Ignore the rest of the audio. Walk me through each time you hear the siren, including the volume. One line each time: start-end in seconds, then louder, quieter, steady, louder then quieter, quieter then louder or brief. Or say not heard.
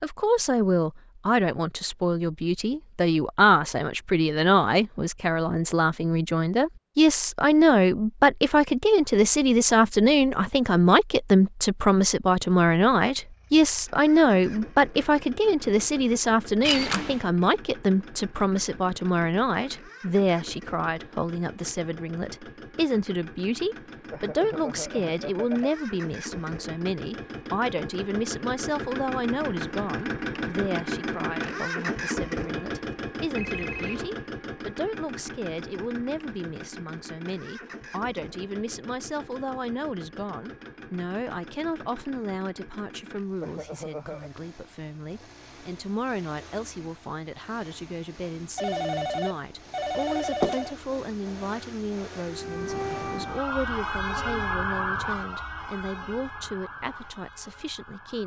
52.2-58.2 quieter.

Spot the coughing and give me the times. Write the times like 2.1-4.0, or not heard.
24.1-25.7, 43.4-44.3.